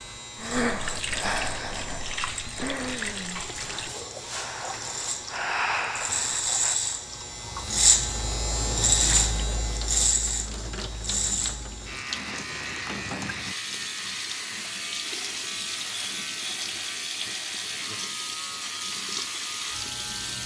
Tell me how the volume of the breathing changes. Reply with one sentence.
The loudness of the breathing goes down, then up.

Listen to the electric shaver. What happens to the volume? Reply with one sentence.
The loudness of the electric shaver goes up, then down.